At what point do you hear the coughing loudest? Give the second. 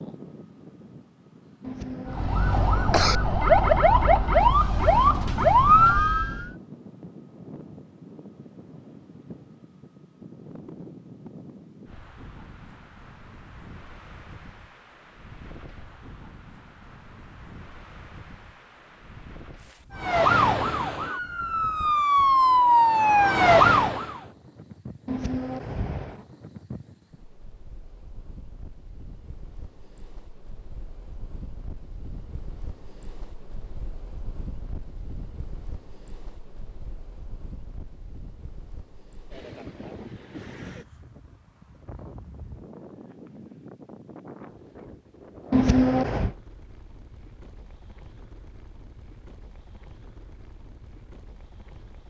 46 s.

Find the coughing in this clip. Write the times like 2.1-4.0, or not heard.
1.6-3.2, 25.1-26.2, 45.5-46.3.